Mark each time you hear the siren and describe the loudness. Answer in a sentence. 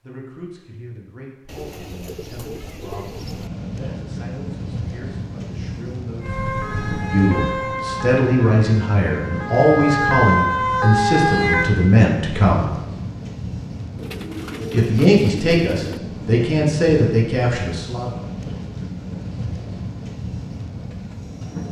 You can hear the siren from 6.2 to 11.7 s, getting quieter then louder.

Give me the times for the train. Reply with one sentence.
You can hear the train from 3.0 to 21.6 s.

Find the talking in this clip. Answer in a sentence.
You can hear the talking from 0.0 to 12.7 s and from 14.7 to 18.1 s.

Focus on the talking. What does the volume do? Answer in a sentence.
The volume of the talking goes up.